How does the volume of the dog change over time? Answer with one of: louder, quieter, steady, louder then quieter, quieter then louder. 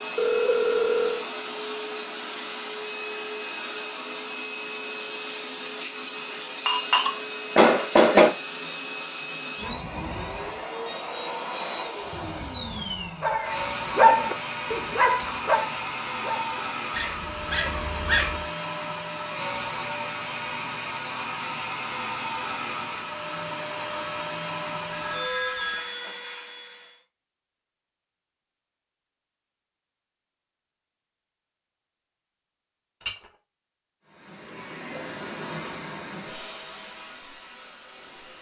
quieter.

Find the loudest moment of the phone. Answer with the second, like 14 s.
1 s.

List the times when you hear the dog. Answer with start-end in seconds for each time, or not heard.
13.2-18.4.